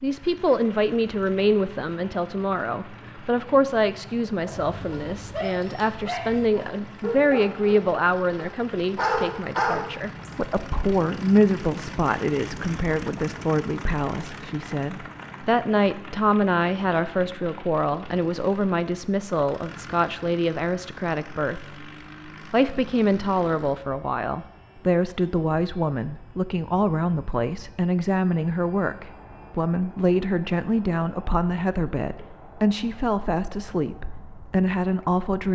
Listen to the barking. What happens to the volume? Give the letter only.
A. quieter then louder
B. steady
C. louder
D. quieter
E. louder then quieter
C.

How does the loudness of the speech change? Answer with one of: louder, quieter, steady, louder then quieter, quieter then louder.
steady.